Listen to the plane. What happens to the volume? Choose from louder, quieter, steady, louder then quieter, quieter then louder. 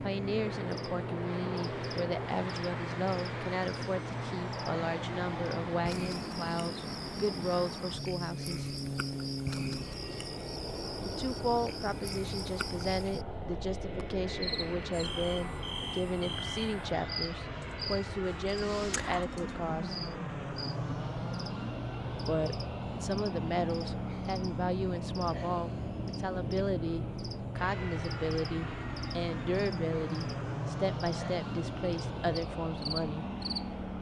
steady.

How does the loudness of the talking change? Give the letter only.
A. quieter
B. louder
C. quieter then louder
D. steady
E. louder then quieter
D.